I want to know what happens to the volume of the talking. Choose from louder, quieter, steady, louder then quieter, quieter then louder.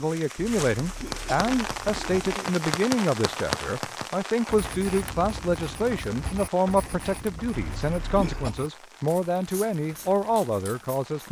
steady.